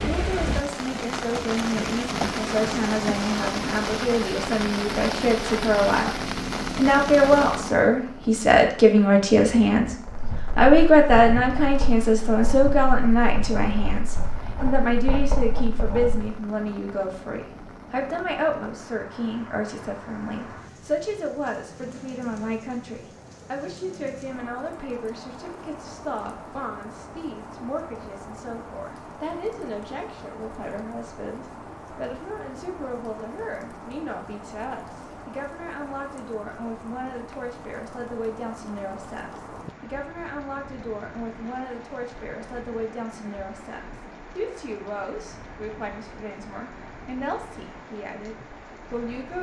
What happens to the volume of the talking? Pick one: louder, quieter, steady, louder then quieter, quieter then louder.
quieter.